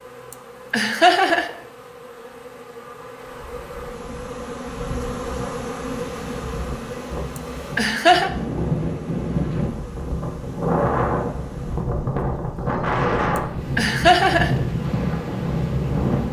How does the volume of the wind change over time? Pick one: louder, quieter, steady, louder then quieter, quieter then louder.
louder.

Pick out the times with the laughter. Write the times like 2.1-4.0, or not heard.
0.7-1.5, 7.8-8.3, 13.8-14.6.